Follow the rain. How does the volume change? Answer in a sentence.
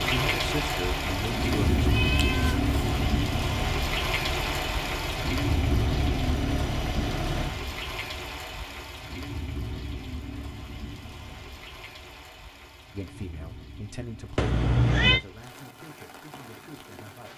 The volume of the rain goes down.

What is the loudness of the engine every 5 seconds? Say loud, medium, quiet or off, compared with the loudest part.
loud, loud, off, off.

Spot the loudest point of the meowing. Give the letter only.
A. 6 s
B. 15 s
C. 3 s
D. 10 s
B.